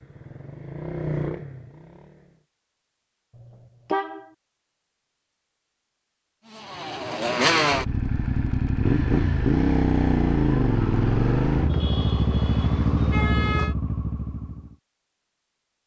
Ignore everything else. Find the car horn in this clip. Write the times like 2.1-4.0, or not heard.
3.4-4.2, 11.7-13.8.